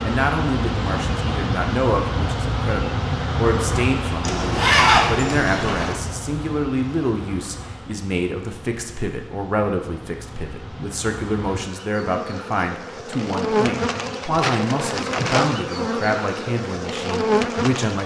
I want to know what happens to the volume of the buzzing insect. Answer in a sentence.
The loudness of the buzzing insect goes down, then up.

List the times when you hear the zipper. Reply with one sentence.
You can hear the zipper from 4.2 to 6.0 s.